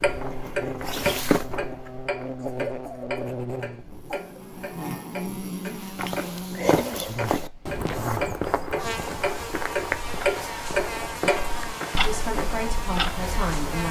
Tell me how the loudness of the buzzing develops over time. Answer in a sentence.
The volume of the buzzing stays about the same.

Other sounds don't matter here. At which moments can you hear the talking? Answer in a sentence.
You can hear the talking from 11.9 to 13.8 s.